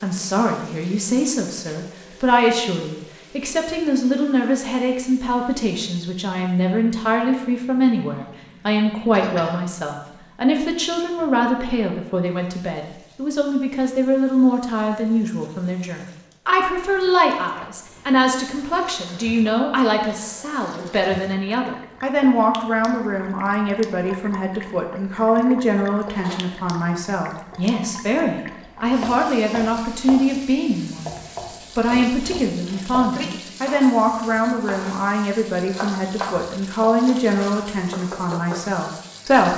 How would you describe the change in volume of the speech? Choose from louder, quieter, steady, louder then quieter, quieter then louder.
steady.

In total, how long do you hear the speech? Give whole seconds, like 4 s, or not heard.
39 s.